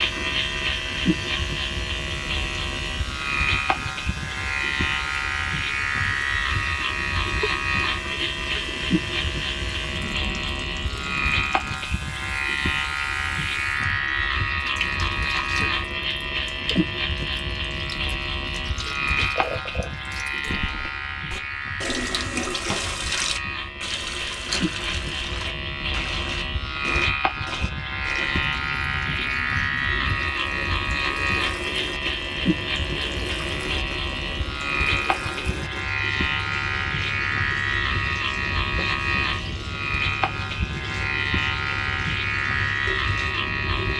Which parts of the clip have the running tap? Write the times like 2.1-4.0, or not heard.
0.0-43.9.